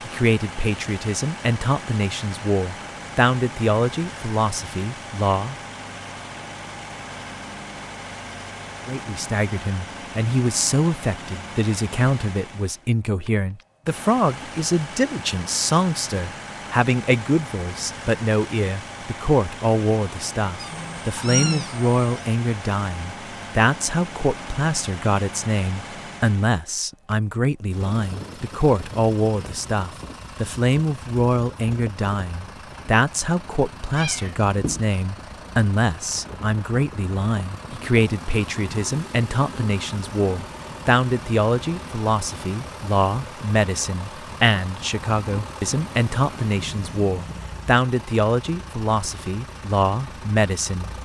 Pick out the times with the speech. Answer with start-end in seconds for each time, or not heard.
0.0-5.5, 8.8-50.9.